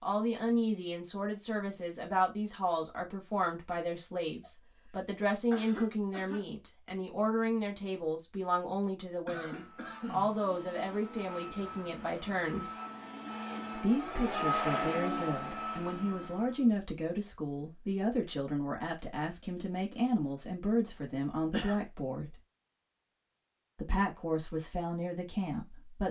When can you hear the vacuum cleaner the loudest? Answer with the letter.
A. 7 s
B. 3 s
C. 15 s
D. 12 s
C.